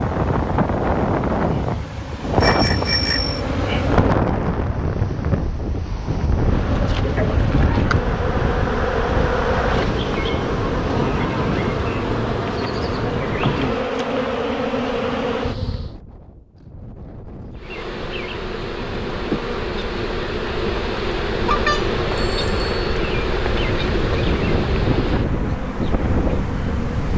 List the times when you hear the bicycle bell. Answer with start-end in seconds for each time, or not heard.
2.4-3.4, 21.4-22.9.